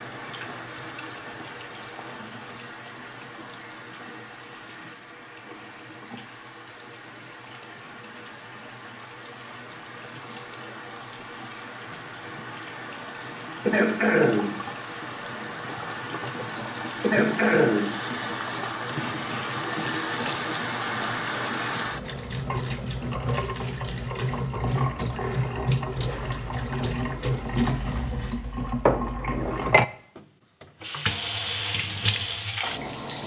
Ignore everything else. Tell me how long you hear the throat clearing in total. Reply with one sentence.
The throat clearing can be heard for 2 seconds in total.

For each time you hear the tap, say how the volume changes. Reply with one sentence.
You can hear the tap from 0.0 to 33.2 s, getting louder.